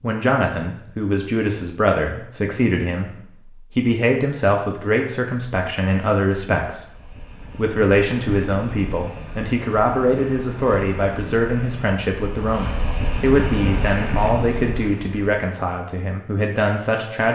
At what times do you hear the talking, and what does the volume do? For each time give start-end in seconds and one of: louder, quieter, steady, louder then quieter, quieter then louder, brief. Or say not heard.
0.0-17.3 steady.